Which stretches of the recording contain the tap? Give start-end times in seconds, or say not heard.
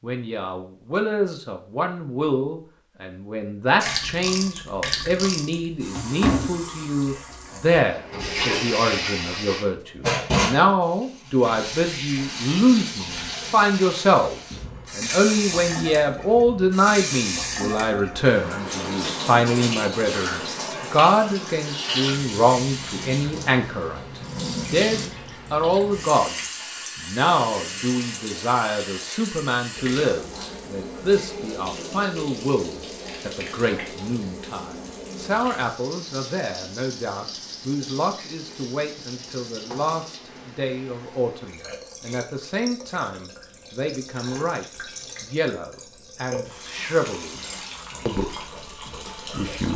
3.8-49.7.